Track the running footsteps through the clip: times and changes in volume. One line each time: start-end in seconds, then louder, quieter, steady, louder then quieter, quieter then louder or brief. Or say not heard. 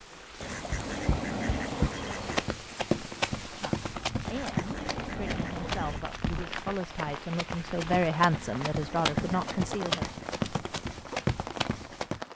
0.7-12.2 quieter then louder.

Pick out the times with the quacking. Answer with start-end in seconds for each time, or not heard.
0.4-2.5, 4.2-6.0, 8.3-10.2.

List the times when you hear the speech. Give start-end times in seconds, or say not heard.
3.5-10.1.